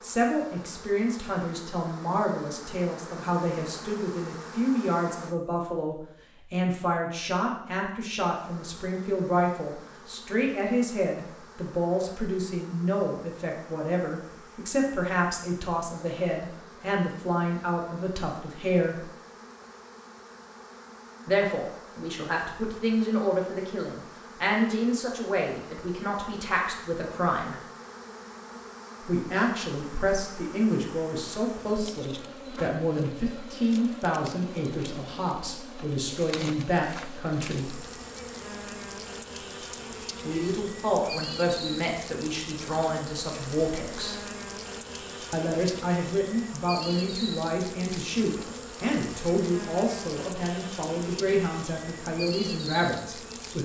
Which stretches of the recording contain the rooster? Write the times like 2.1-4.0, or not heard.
not heard.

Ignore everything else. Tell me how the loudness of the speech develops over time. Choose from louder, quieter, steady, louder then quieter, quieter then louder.
steady.